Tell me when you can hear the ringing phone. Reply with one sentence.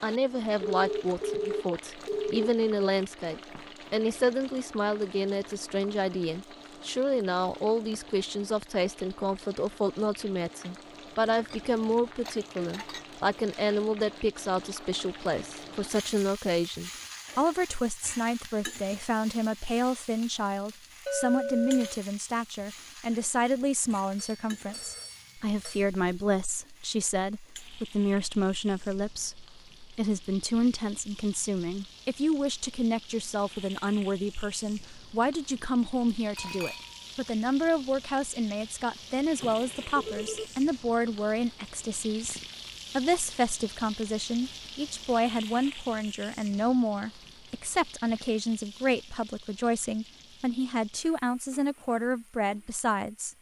The ringing phone can be heard from 0.7 to 2.5 s, from 24.1 to 25.9 s and from 39.4 to 40.5 s.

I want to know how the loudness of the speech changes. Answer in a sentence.
The loudness of the speech stays about the same.